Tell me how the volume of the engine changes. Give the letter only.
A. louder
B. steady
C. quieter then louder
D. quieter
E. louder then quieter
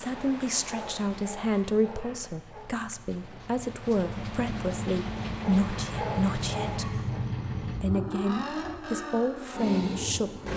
A.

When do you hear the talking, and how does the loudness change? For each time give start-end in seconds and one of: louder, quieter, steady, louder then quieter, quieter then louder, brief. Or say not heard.
0.0-10.5 steady.